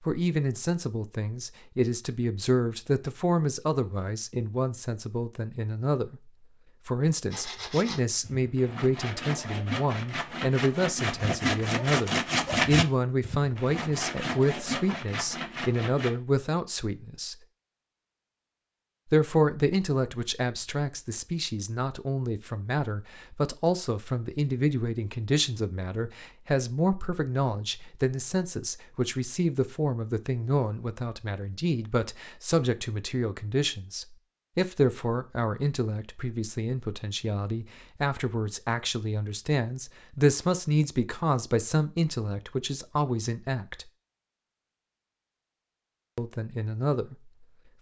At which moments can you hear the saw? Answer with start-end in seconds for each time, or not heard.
7.3-16.1.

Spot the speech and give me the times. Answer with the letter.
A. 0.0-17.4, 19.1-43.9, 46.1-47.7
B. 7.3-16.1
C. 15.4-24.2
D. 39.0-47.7
A.